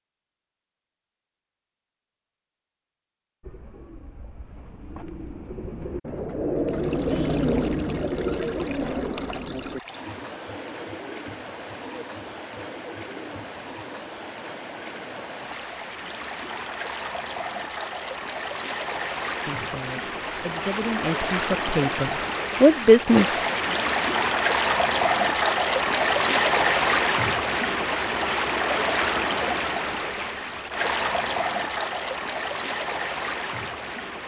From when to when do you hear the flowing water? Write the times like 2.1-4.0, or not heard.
6.7-34.2.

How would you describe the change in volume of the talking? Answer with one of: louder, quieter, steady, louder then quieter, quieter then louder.
louder.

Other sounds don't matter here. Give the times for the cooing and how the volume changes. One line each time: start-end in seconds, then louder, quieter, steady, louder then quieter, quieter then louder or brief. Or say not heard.
3.4-14.0 louder then quieter.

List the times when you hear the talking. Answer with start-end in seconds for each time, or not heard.
19.4-23.5.